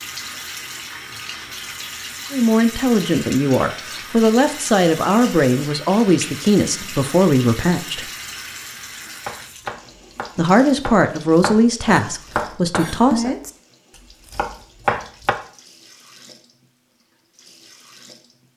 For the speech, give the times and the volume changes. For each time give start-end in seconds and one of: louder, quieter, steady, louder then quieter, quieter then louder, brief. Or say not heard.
2.3-8.1 steady
10.3-13.3 brief.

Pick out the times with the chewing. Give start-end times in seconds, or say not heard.
not heard.